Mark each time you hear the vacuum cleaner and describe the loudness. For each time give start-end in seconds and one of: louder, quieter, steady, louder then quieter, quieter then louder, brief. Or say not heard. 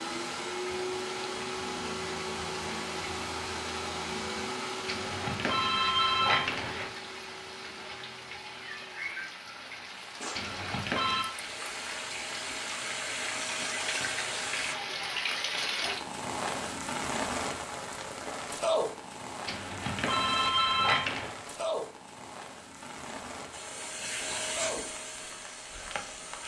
0.0-14.8 quieter then louder
23.5-26.4 brief.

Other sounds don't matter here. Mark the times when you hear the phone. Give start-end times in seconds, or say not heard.
4.8-6.9, 10.3-11.2, 19.4-21.4.